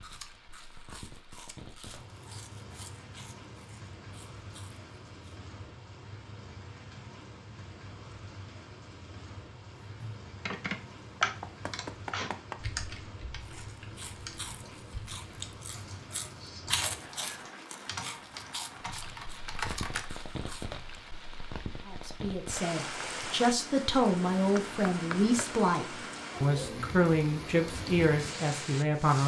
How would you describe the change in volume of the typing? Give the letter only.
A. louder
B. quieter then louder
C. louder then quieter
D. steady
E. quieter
B.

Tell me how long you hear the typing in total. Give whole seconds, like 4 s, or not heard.
10 s.